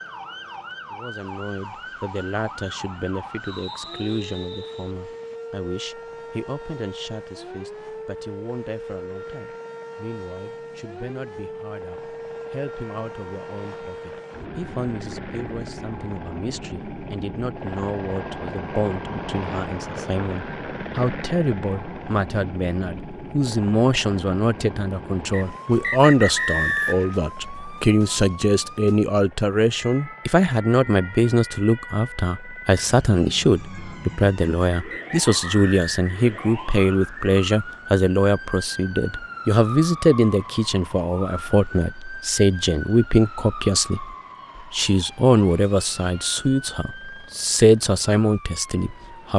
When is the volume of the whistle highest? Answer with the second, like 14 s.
27 s.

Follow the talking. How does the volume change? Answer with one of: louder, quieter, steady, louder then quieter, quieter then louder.
louder.